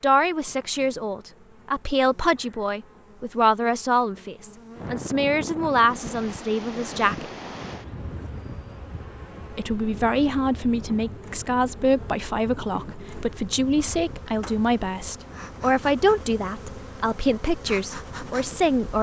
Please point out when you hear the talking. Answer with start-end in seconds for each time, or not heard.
0.0-7.2, 9.5-18.9.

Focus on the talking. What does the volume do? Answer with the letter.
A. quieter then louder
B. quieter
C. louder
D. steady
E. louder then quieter
D.